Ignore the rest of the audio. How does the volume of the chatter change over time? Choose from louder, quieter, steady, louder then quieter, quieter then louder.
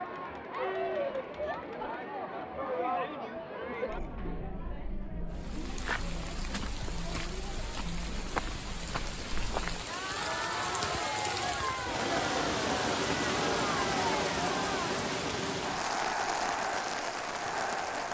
quieter then louder.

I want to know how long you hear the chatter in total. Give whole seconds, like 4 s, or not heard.
18 s.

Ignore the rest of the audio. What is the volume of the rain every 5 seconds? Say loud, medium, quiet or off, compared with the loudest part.
off, medium, loud, loud.